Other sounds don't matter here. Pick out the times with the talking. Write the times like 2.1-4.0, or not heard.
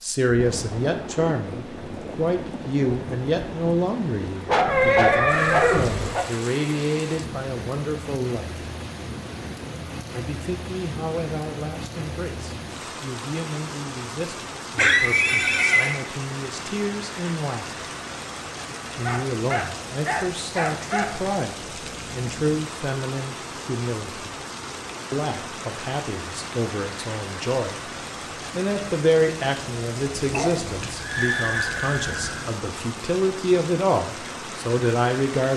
0.0-8.7, 10.1-17.8, 18.9-24.3, 25.1-35.5.